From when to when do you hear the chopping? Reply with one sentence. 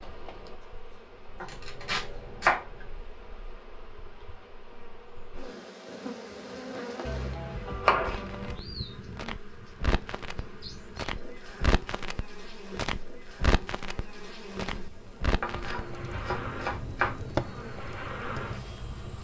You can hear the chopping from 1.4 to 2.6 s, from 7.0 to 8.6 s and from 15.4 to 17.2 s.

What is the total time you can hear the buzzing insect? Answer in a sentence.
You can hear the buzzing insect for 19 seconds altogether.